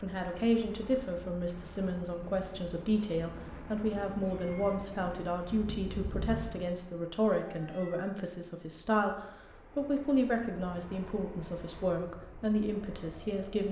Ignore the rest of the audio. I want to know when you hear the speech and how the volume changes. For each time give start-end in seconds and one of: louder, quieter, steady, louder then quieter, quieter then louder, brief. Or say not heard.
0.0-13.6 steady.